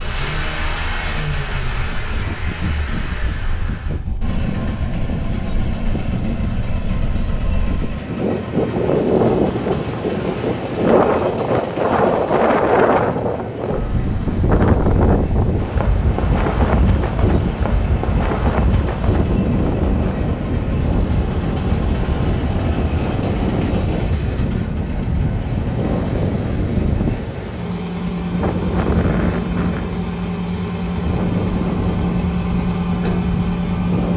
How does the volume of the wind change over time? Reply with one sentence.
The loudness of the wind goes up, then down.